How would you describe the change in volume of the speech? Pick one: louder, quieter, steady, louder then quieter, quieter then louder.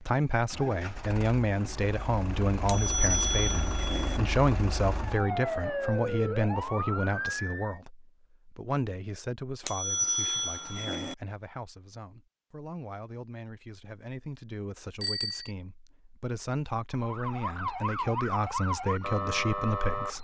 quieter then louder.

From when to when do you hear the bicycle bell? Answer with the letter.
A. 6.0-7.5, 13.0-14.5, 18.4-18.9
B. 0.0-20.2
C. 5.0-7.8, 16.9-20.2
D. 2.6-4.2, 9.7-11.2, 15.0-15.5
D.